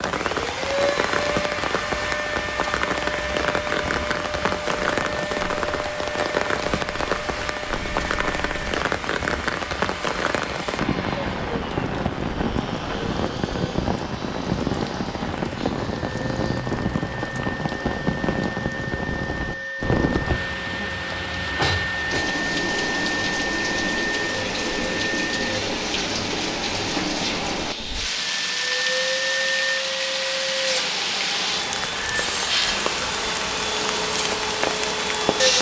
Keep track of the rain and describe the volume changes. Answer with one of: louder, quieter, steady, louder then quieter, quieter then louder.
steady.